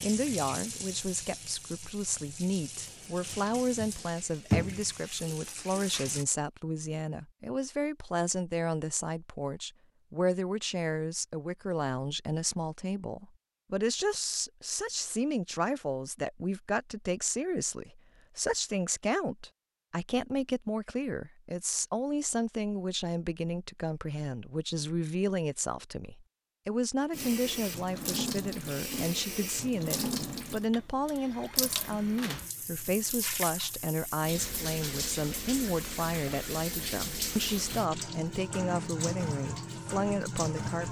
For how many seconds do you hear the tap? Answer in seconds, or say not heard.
20 s.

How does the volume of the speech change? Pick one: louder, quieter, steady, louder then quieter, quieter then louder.
steady.